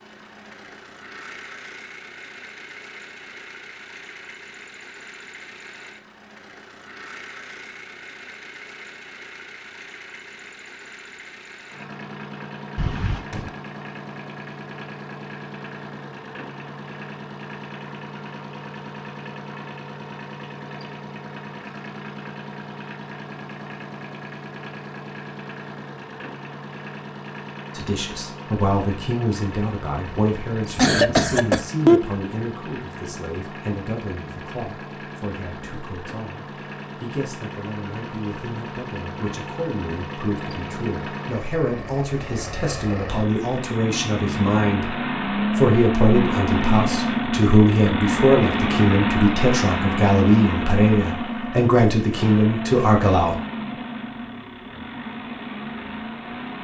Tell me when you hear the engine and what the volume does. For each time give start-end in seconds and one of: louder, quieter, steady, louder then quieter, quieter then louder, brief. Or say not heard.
0.0-56.5 louder.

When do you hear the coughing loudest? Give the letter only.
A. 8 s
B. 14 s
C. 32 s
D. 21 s
C.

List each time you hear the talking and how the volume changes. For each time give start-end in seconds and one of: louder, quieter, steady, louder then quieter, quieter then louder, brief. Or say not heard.
27.8-53.4 quieter then louder.